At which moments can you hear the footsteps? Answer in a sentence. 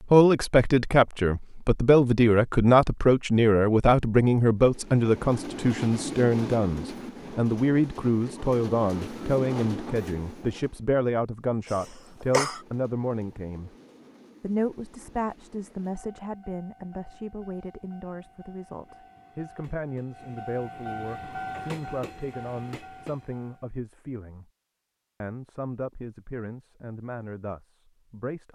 The footsteps can't be heard in this clip.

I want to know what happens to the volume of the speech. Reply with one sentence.
The volume of the speech goes down.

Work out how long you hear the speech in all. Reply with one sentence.
You can hear the speech for 27 seconds altogether.